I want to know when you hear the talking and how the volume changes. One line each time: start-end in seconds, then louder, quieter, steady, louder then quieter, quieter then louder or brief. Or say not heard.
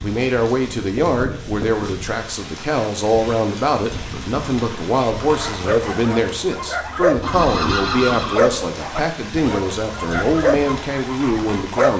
0.0-11.9 steady.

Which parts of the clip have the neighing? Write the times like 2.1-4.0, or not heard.
7.2-8.7.